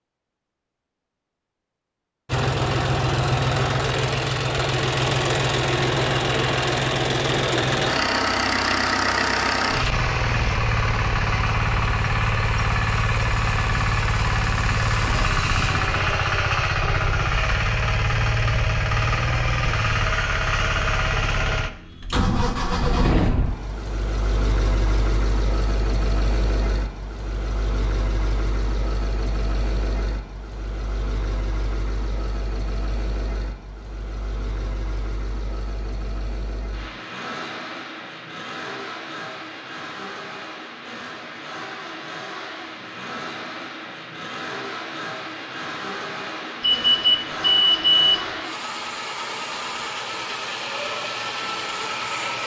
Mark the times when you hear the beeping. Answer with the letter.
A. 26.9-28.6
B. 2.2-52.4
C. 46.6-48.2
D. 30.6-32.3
C.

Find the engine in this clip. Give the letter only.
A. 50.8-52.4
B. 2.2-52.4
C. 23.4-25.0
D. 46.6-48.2
B.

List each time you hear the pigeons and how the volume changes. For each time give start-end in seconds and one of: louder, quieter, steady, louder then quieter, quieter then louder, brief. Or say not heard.
not heard.